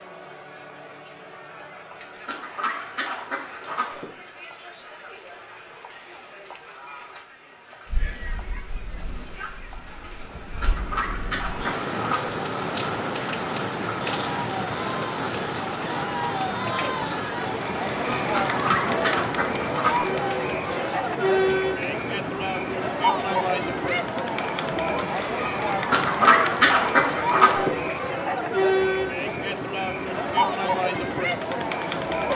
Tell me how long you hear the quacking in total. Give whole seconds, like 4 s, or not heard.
7 s.